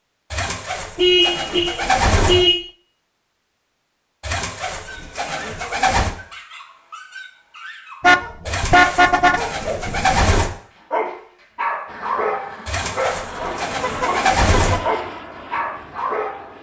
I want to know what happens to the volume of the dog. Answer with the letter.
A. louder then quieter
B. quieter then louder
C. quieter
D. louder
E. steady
D.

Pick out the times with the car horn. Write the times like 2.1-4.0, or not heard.
0.9-2.6, 8.0-9.4, 13.8-14.8.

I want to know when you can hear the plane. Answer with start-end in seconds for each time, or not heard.
11.8-16.5.